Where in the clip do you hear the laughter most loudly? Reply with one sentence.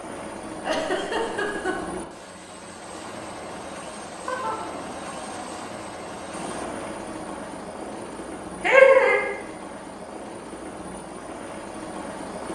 The volume of the laughter peaks at 9 seconds.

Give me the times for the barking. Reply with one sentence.
You can't hear the barking here.